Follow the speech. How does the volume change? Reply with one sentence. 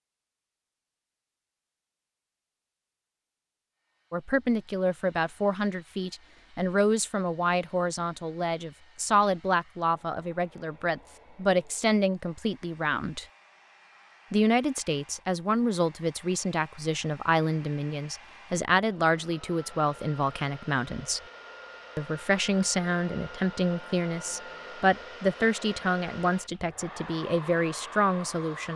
The loudness of the speech stays about the same.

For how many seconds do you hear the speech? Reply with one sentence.
The speech can be heard for 23 seconds in total.